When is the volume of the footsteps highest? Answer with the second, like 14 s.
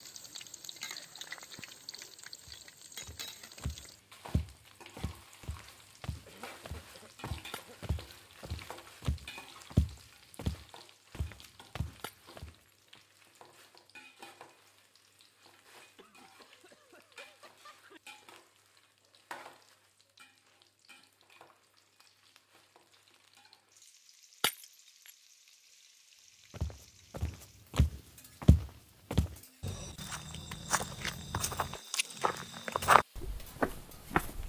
33 s.